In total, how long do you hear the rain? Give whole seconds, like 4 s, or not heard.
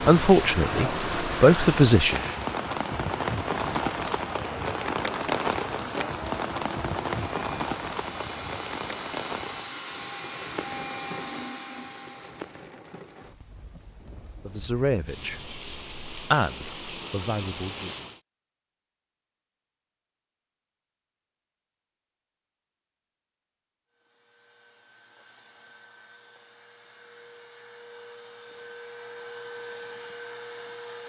18 s.